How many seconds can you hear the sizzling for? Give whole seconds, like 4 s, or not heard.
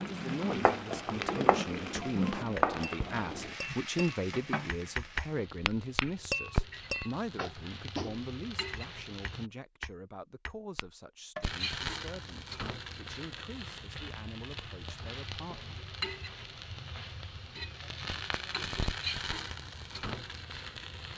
19 s.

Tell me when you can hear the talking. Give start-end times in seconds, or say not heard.
0.0-15.8.